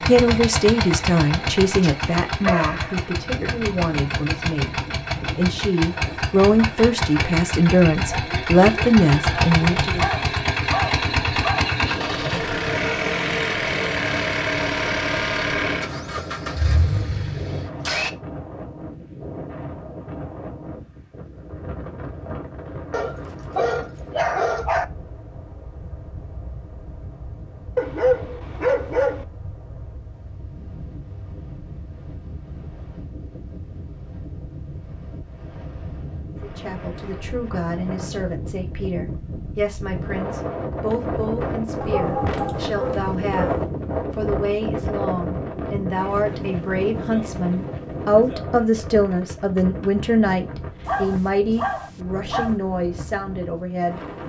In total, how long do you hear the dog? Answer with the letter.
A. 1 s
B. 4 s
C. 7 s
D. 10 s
D.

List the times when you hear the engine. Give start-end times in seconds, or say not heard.
0.0-18.1.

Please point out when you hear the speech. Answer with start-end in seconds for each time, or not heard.
0.0-10.1, 36.4-54.0.